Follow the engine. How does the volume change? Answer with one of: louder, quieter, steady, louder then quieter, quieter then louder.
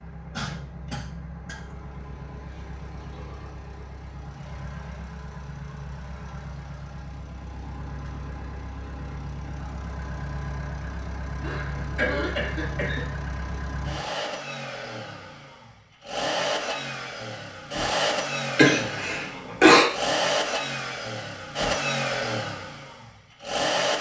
louder.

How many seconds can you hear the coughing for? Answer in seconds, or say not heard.
4 s.